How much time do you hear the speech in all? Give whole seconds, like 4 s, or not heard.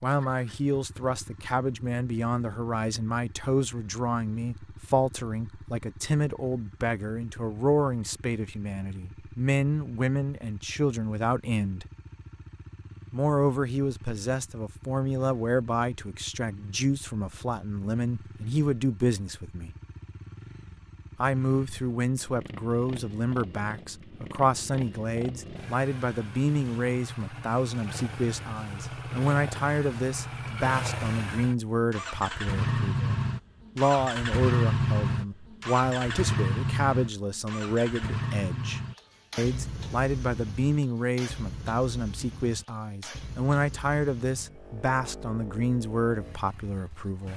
44 s.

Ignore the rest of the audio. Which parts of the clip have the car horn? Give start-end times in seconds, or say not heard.
not heard.